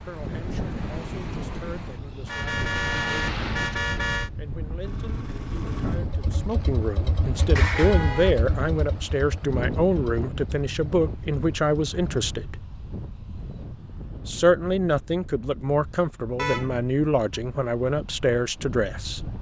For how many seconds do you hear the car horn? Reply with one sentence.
You can hear the car horn for 4 seconds altogether.